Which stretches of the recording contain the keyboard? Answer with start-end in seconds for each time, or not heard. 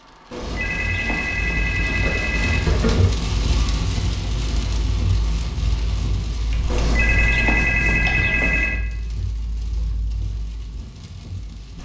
2.0-3.1, 6.5-8.3.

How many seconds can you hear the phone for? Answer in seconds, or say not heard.
5 s.